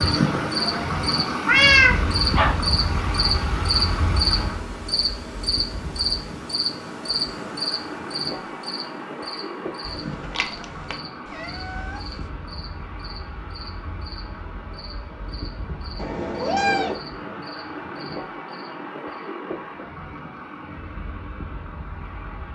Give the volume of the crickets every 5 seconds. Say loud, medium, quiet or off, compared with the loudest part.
loud, loud, quiet, quiet, off.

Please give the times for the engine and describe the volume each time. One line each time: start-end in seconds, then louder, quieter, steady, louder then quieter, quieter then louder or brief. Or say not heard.
0.0-22.5 quieter.